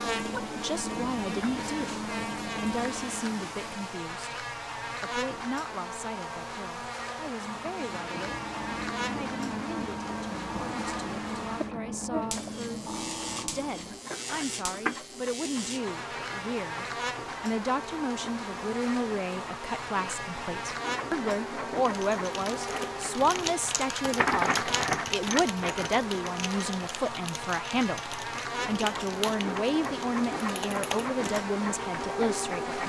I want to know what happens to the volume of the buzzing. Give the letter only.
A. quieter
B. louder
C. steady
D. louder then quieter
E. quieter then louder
C.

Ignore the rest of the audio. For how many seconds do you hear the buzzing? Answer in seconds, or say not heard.
33 s.